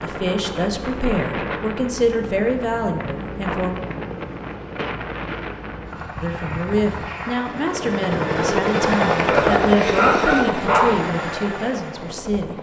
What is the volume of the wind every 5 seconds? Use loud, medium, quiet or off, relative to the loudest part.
loud, loud, off.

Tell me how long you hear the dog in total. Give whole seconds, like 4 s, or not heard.
2 s.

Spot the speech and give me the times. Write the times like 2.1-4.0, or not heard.
0.0-3.8, 6.2-12.5.